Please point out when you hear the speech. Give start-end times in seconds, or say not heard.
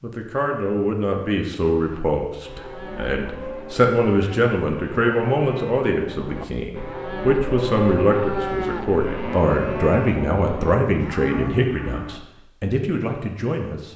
0.0-13.9.